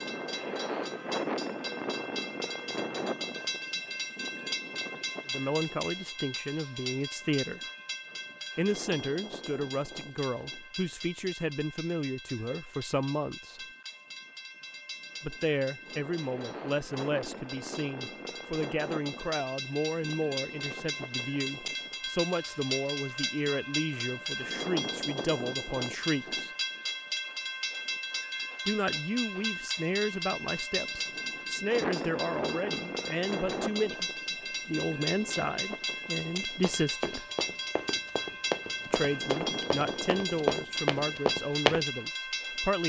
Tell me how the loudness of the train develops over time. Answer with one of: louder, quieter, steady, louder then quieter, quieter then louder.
quieter then louder.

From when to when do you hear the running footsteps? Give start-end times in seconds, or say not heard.
36.6-41.9.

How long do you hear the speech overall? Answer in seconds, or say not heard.
31 s.